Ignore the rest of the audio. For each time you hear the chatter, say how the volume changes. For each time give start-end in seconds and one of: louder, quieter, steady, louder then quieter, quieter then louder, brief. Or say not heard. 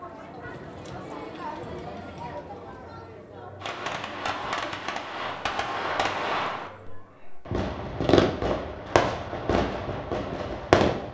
0.0-7.5 quieter.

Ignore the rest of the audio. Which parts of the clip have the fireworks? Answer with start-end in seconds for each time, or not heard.
3.6-11.0.